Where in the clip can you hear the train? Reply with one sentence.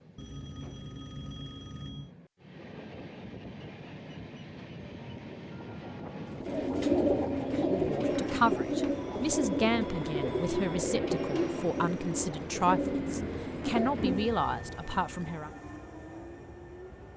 The train can be heard from 0.0 to 17.1 s.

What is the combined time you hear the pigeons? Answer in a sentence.
You can hear the pigeons for 8 seconds altogether.